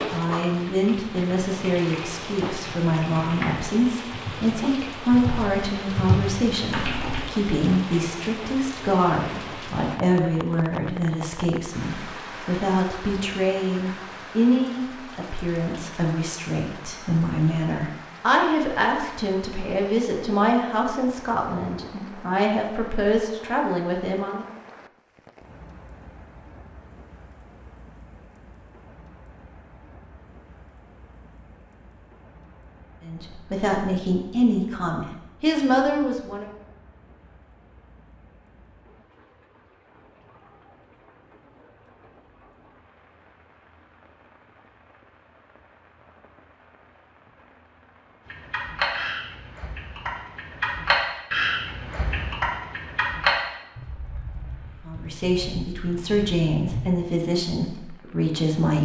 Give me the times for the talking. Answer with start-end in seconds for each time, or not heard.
0.1-24.4, 33.0-36.5, 54.9-58.8.